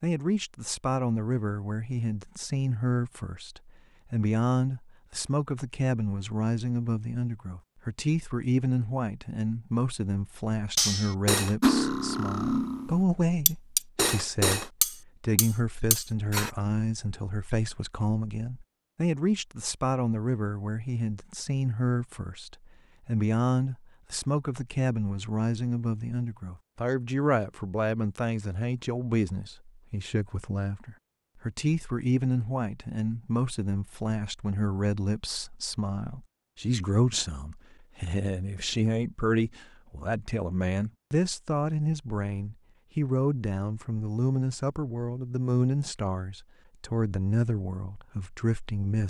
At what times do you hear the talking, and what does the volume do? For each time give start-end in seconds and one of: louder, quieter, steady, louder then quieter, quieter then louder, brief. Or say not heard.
0.0-49.0 steady.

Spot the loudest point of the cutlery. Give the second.
12 s.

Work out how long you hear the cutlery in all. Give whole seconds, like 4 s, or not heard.
6 s.